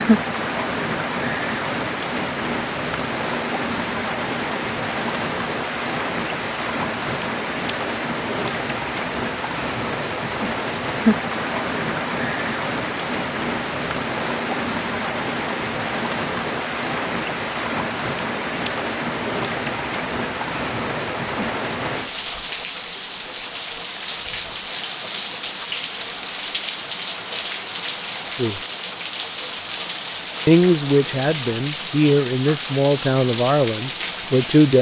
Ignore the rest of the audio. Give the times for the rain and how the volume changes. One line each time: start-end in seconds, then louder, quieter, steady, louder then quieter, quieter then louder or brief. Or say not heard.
0.0-34.7 steady.